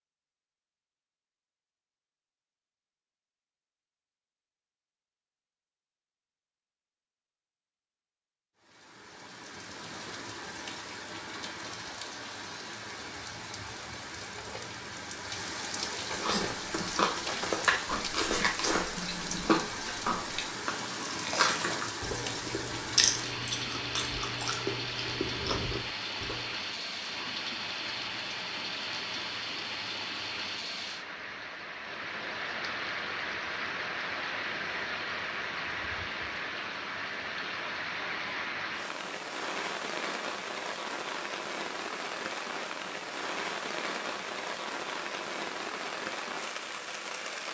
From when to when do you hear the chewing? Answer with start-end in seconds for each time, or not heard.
16.1-26.4.